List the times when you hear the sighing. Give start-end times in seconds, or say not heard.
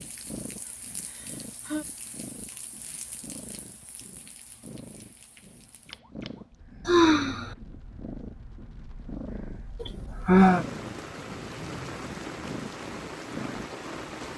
1.1-1.9, 6.8-7.5, 9.8-10.7.